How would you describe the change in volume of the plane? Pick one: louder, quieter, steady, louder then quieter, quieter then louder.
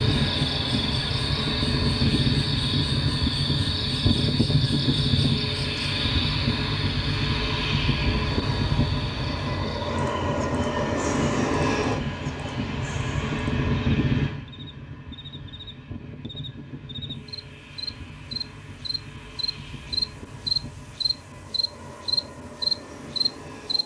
quieter.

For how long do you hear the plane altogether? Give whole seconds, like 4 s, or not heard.
24 s.